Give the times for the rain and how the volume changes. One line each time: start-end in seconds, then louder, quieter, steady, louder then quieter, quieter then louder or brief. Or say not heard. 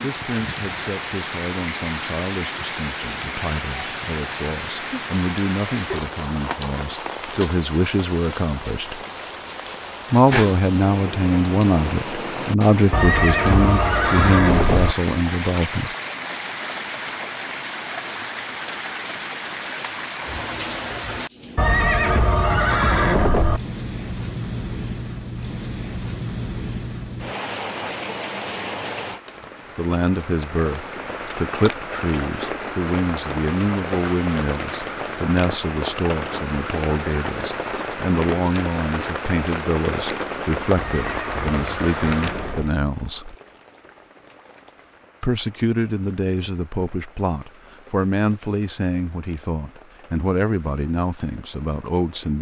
0.0-52.3 quieter.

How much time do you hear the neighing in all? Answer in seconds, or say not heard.
6 s.